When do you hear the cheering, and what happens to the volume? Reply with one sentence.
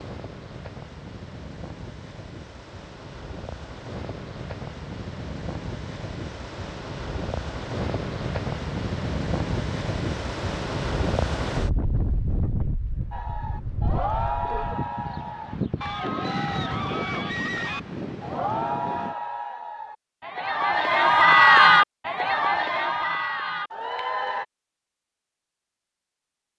The cheering can be heard from 13.1 to 24.4 s, getting louder then quieter.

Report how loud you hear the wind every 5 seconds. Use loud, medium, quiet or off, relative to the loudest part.
medium, loud, loud, loud, off, off.